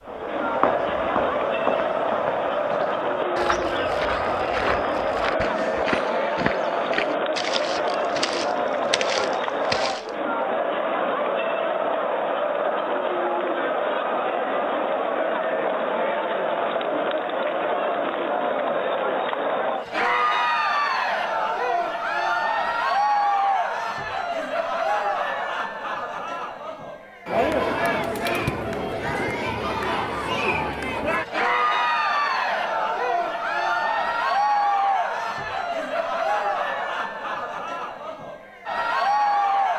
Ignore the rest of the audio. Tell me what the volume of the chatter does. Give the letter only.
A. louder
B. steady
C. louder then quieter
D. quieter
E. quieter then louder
B.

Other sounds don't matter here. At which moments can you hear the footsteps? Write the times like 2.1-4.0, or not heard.
0.1-10.1.